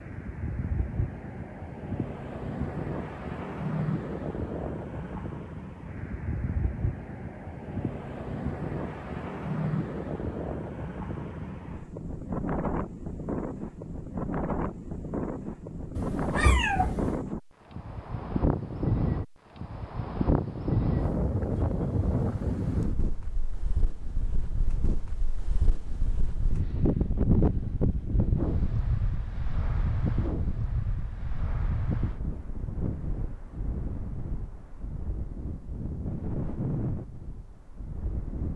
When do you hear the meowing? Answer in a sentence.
The meowing can be heard from 15.9 to 17.2 s.